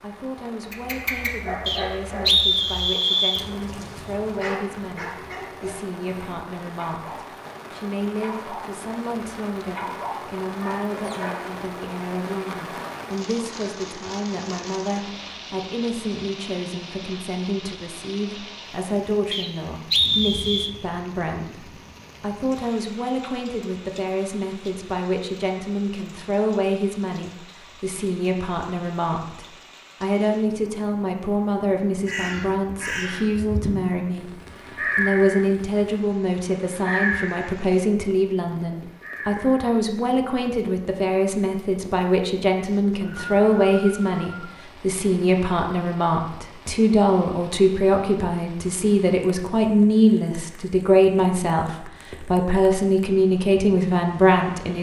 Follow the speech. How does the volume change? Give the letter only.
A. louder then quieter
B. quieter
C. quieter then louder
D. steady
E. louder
E.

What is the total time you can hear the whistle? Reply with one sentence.
The whistle can be heard for 5 seconds in total.